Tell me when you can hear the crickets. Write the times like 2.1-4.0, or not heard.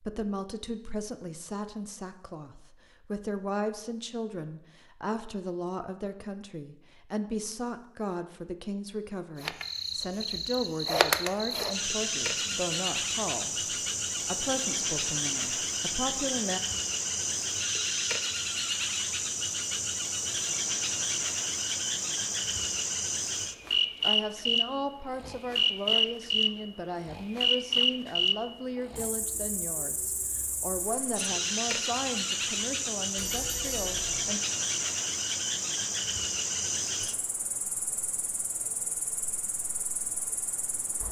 9.4-41.0.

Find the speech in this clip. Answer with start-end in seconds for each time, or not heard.
0.0-16.6, 24.0-34.4.